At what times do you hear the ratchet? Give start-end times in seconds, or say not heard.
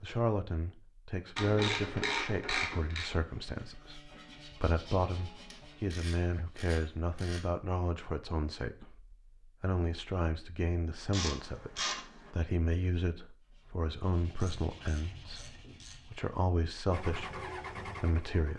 1.4-3.1, 5.5-7.5, 11.1-12.3, 14.4-16.0.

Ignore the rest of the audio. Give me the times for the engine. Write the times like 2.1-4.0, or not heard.
16.9-18.5.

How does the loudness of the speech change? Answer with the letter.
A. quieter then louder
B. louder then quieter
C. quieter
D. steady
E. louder
D.